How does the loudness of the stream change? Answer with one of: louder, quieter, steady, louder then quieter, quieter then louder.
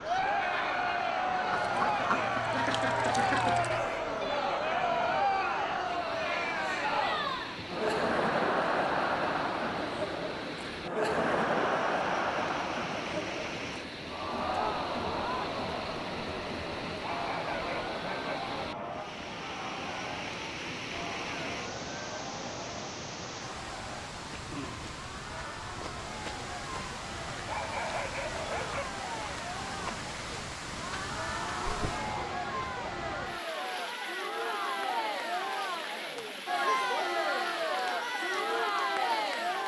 steady.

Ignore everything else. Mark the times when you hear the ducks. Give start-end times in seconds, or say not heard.
1.5-3.9.